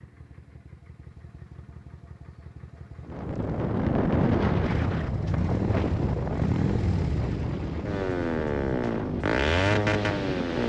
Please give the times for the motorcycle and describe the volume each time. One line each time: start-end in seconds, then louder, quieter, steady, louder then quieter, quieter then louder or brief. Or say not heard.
0.0-10.6 louder.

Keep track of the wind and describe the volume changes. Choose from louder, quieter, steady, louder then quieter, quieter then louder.
quieter.